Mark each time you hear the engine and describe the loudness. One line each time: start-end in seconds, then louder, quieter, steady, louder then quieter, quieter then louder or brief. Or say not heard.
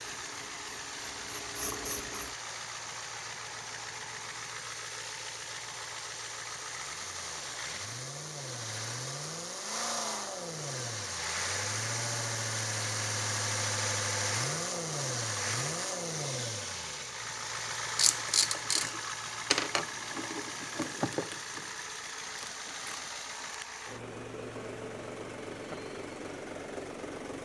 0.0-27.4 louder then quieter.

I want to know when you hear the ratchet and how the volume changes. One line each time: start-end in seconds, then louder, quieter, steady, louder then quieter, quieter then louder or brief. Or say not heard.
0.0-2.4 brief
17.9-23.1 quieter.